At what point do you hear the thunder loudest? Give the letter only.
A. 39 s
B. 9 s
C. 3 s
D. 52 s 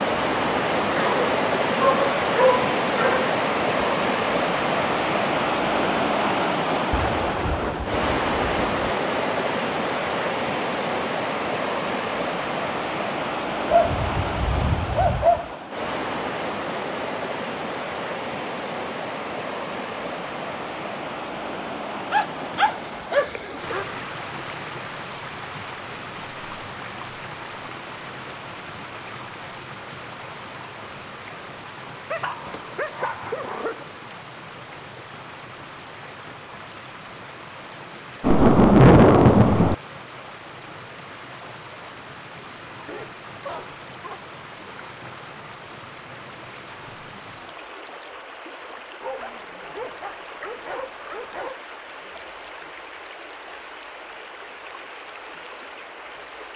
A.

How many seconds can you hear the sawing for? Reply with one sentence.
You can't hear the sawing here.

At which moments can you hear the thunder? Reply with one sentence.
You can hear the thunder from 6.9 to 8.9 s and from 38.2 to 39.8 s.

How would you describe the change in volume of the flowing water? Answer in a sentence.
The volume of the flowing water goes down.